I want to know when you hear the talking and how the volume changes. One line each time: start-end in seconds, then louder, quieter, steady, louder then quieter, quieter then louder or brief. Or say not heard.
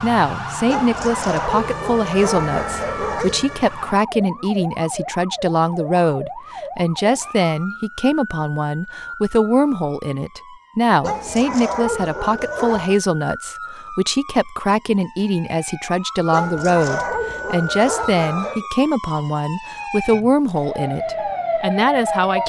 0.0-22.4 steady.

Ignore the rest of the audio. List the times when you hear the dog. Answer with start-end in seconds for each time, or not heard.
0.7-3.5, 11.0-13.0, 16.3-18.6.